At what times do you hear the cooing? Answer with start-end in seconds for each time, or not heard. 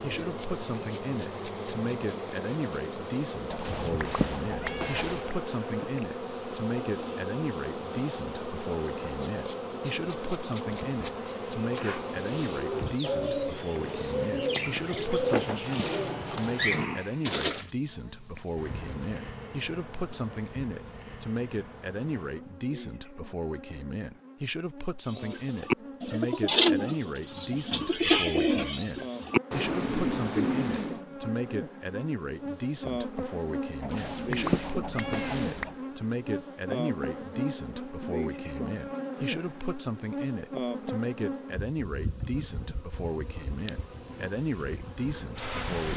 11.8-17.8, 25.1-31.0.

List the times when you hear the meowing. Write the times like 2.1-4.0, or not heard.
3.5-5.3, 33.8-35.8.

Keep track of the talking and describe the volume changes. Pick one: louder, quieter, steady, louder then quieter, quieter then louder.
steady.